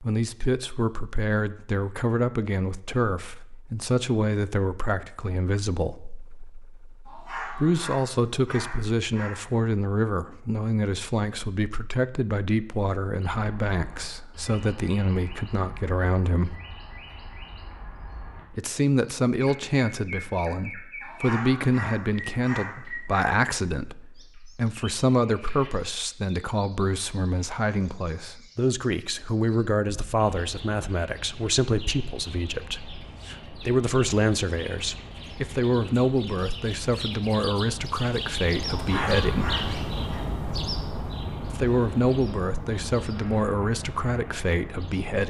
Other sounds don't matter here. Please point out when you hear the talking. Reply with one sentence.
The talking can be heard from 0.0 to 16.6 s, from 18.5 to 39.5 s and from 41.5 to 45.2 s.